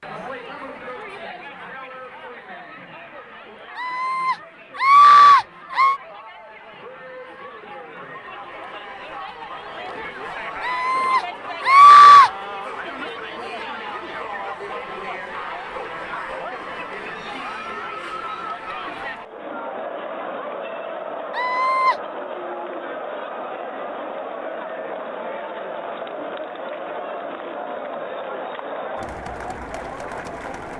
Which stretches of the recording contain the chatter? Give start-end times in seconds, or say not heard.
0.0-30.7.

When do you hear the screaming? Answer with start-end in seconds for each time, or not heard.
3.8-6.0, 10.6-12.3, 21.4-21.9.